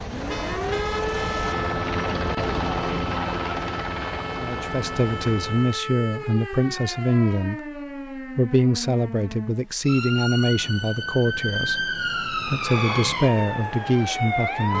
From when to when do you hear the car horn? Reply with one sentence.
The car horn can be heard from 0.2 to 1.8 s and from 12.5 to 13.2 s.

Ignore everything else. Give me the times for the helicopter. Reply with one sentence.
You can hear the helicopter from 0.0 to 5.8 s.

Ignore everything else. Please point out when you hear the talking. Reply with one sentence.
You can hear the talking from 4.3 to 14.7 s.